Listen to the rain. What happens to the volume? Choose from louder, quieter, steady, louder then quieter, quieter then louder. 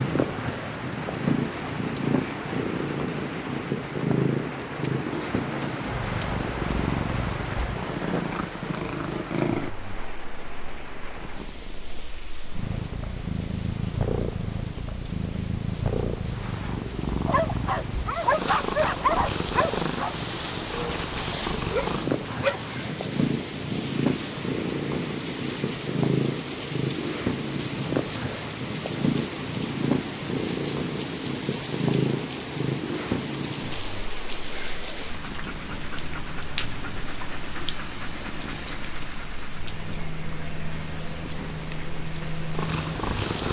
quieter then louder.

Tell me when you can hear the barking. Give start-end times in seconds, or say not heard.
17.2-22.8.